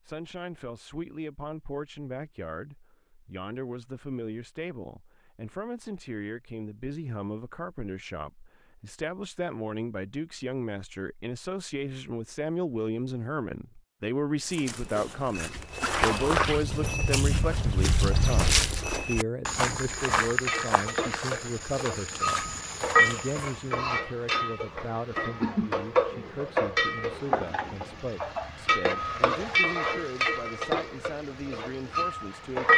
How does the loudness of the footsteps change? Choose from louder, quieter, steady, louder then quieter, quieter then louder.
quieter.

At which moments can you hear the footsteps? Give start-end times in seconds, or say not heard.
14.4-23.7.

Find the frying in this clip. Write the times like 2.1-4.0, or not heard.
19.9-32.7.